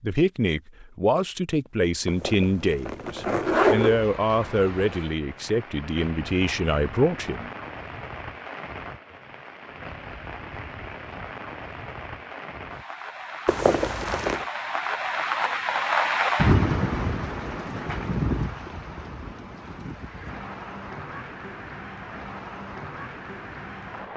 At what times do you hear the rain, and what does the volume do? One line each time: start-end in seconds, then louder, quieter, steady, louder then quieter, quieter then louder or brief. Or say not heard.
3.8-24.1 louder then quieter.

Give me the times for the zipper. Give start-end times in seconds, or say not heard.
2.0-4.0, 13.4-14.4.